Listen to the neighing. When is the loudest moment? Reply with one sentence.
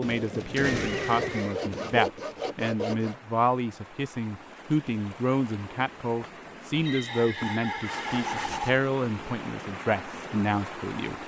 The loudest moment of the neighing is at 1 second.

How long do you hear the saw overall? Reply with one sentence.
The saw can be heard for 4 seconds in total.